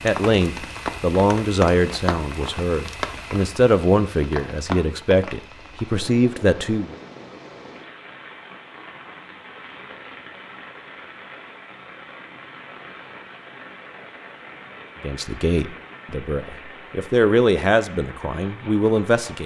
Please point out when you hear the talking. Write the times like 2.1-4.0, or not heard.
0.0-7.0, 15.0-19.4.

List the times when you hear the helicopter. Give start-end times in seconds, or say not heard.
not heard.